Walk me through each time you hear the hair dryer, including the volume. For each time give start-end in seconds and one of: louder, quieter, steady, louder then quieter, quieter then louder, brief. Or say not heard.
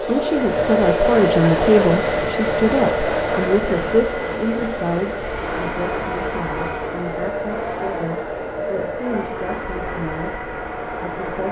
0.0-11.4 quieter.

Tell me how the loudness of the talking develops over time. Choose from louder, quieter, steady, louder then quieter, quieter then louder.
quieter.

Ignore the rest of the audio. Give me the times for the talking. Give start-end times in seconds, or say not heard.
0.0-11.4.